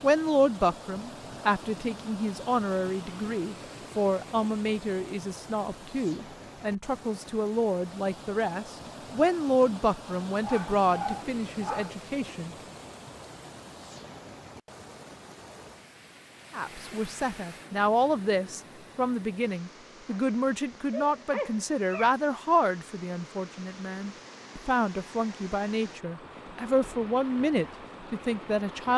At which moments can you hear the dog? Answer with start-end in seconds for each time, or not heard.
10.4-11.9, 20.1-22.1.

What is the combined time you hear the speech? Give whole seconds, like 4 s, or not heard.
25 s.